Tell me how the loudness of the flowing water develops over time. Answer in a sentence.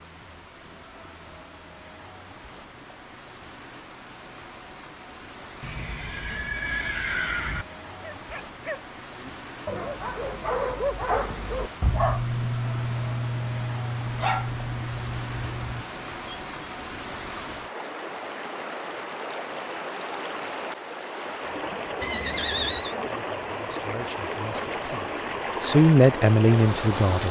The loudness of the flowing water goes up.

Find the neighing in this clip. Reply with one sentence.
The neighing can be heard from 5.6 to 7.7 s and from 22.0 to 22.9 s.